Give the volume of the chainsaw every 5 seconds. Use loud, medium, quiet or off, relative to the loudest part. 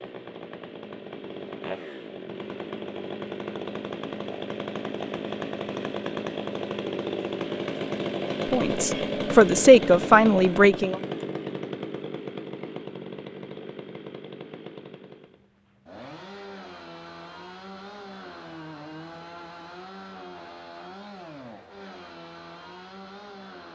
medium, loud, medium, quiet, quiet.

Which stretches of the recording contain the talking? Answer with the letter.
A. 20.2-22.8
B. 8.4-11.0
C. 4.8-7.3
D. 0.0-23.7
B.